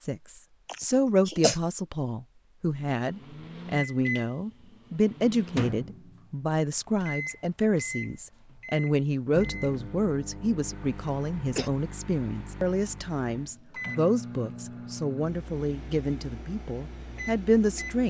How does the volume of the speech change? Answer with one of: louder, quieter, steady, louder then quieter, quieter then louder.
steady.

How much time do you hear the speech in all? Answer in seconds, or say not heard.
18 s.